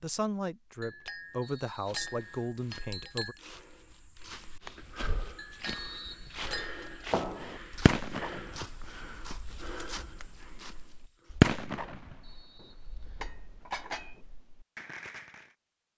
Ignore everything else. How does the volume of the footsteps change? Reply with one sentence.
The loudness of the footsteps goes up.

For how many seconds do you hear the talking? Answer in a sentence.
The talking can be heard for 3 seconds in total.